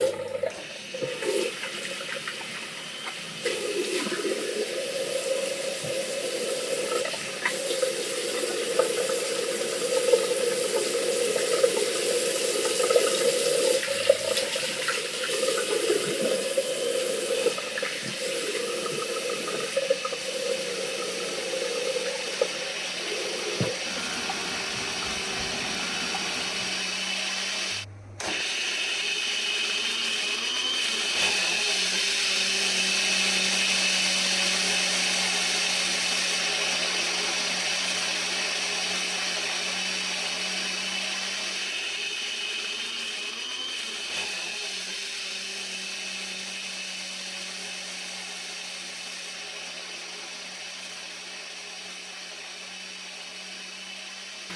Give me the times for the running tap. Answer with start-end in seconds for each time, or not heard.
0.0-26.9.